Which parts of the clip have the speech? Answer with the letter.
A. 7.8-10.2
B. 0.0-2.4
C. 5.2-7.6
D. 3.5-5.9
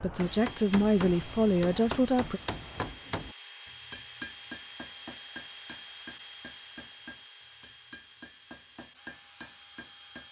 B.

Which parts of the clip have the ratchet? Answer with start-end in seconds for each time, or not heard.
not heard.